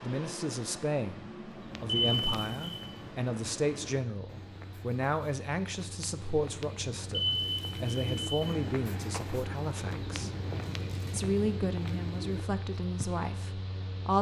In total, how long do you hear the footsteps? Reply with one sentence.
You can hear the footsteps for 12 seconds altogether.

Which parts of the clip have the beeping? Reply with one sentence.
The beeping can be heard from 1.9 to 2.9 s and from 7.1 to 8.3 s.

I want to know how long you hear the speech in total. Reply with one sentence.
You can hear the speech for 13 seconds altogether.